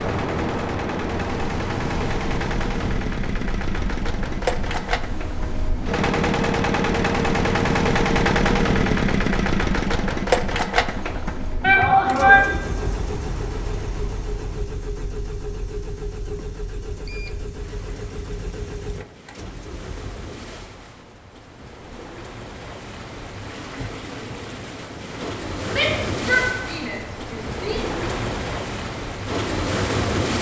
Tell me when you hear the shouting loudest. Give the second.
12 s.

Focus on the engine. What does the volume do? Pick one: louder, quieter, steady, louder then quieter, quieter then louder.
louder then quieter.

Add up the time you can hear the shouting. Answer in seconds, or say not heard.
3 s.